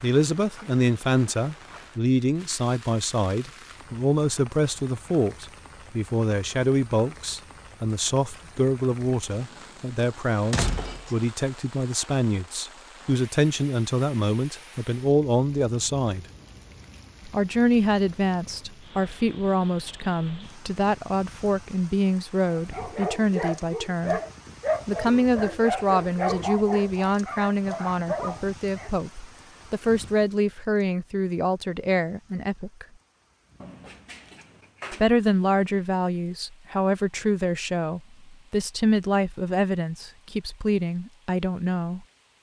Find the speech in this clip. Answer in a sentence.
You can hear the speech from 0.0 to 16.2 s, from 17.2 to 24.2 s, from 24.9 to 32.9 s and from 34.9 to 42.0 s.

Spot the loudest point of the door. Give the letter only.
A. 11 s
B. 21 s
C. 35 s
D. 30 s
A.